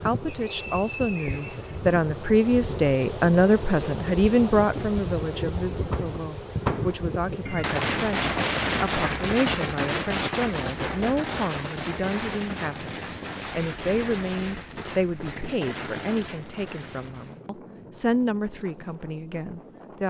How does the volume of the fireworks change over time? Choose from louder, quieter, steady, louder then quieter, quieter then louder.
quieter.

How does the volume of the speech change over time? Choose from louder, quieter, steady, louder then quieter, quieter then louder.
quieter.